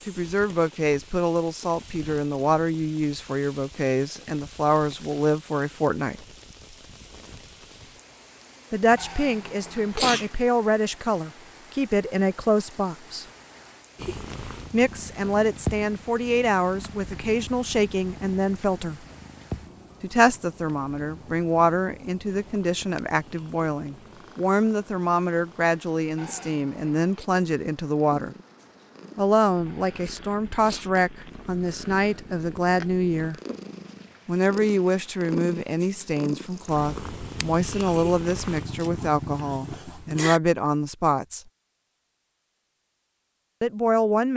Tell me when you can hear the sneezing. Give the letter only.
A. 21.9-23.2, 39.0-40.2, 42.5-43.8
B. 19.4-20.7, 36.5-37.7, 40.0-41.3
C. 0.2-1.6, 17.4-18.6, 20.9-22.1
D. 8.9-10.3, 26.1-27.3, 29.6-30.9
D.